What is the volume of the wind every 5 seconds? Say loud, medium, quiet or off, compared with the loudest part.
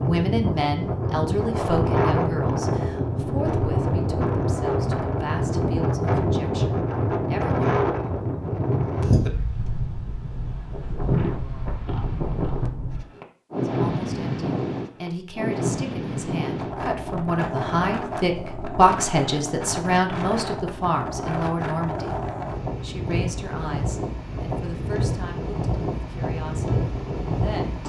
loud, loud, loud, medium, medium, loud.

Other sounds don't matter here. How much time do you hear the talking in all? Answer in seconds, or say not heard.
21 s.